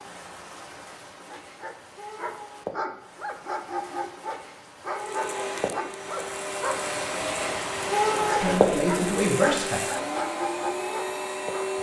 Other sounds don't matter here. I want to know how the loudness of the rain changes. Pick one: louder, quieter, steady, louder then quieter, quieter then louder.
louder then quieter.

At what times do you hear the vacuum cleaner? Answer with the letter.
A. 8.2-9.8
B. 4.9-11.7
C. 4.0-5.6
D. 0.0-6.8
B.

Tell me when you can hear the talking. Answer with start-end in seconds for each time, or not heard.
8.2-9.8.